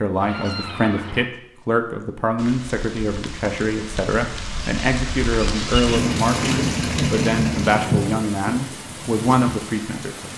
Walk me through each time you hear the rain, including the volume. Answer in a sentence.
The rain can be heard from 2.4 to 10.3 s, getting louder then quieter.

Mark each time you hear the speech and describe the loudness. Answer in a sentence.
You can hear the speech from 0.0 to 10.3 s, at a steady volume.